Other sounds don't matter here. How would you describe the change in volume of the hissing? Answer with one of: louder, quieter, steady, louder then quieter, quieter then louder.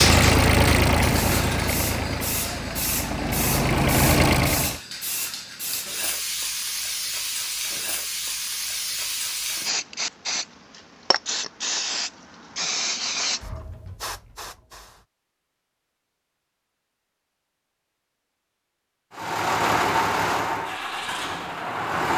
steady.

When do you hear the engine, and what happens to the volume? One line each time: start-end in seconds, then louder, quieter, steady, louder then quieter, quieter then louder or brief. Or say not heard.
0.0-4.8 quieter then louder
19.1-22.1 brief.